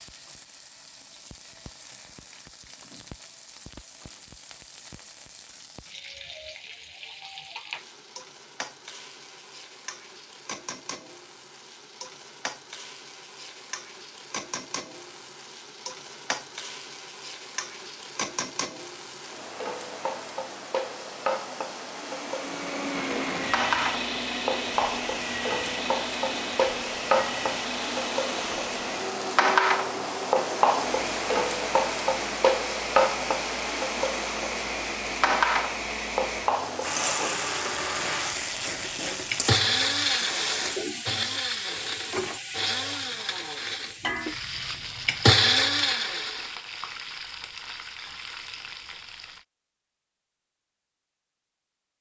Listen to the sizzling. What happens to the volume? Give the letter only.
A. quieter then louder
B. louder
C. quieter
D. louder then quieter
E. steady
D.